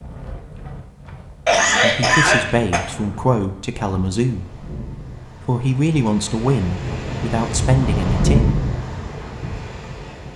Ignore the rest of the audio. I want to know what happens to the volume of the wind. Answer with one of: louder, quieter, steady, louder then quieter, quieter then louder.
louder.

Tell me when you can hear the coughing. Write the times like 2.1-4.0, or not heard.
1.4-2.8.